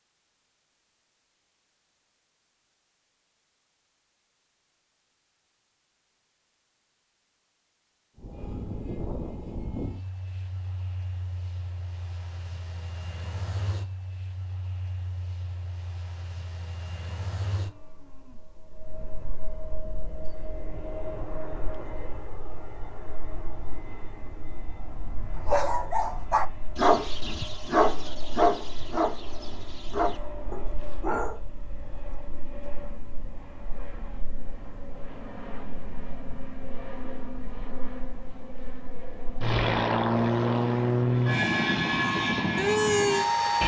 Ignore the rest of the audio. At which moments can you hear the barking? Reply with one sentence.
You can hear the barking from 25.4 to 31.4 s.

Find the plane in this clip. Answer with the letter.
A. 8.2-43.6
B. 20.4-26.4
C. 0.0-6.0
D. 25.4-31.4
A.